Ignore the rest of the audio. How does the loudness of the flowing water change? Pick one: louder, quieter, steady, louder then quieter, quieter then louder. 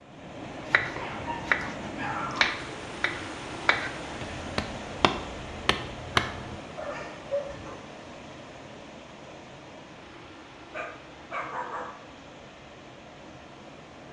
quieter.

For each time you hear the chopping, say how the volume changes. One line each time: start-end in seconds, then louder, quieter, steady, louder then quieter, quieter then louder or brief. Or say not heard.
0.7-6.5 quieter.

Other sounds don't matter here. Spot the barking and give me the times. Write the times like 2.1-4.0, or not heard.
0.9-2.5, 6.2-7.8, 10.7-11.8.